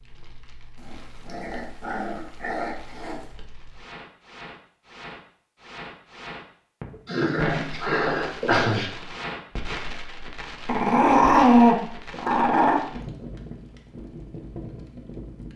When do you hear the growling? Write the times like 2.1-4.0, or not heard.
0.8-3.2, 7.0-8.9, 10.7-12.8.